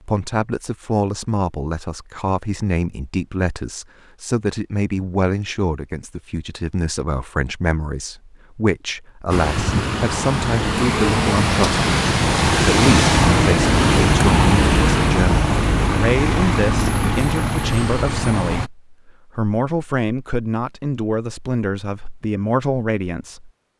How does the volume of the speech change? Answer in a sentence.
The volume of the speech stays about the same.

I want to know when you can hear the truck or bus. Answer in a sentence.
You can hear the truck or bus from 9.3 to 18.7 s.